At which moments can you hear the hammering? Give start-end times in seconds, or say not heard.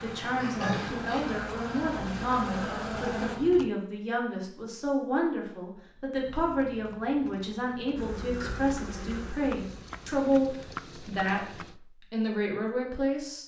not heard.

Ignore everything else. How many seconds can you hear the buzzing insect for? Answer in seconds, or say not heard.
6 s.